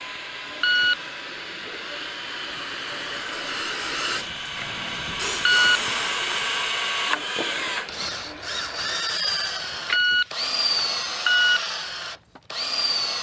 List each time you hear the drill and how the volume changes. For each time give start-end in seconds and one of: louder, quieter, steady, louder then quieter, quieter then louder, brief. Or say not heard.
0.0-13.1 louder.